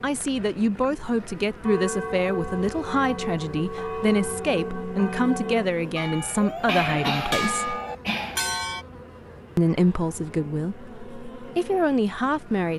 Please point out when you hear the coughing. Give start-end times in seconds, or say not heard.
6.7-8.4.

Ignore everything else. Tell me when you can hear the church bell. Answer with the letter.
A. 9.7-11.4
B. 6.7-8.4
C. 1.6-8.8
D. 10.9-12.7
C.